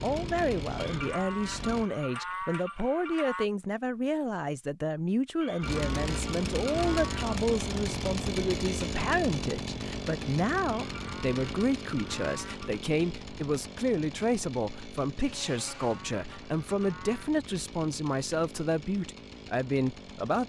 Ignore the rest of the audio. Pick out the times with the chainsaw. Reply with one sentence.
The chainsaw can be heard from 0.0 to 1.9 s and from 5.6 to 20.4 s.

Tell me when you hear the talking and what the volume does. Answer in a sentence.
You can hear the talking from 0.0 to 20.4 s, at a steady volume.